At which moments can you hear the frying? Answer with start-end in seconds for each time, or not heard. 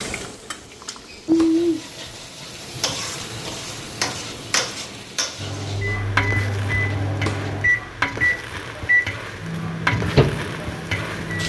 0.0-11.4.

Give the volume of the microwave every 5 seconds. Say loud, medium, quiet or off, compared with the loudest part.
off, loud, loud.